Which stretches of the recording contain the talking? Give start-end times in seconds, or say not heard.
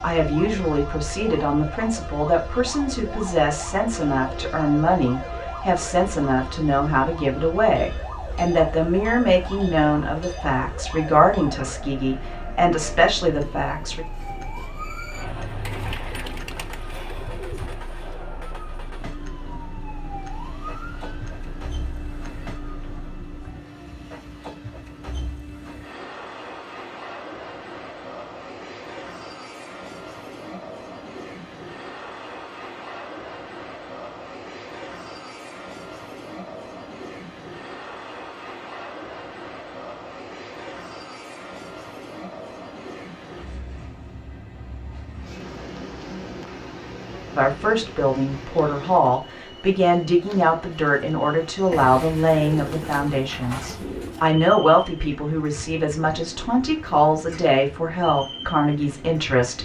0.0-14.1, 47.3-59.5.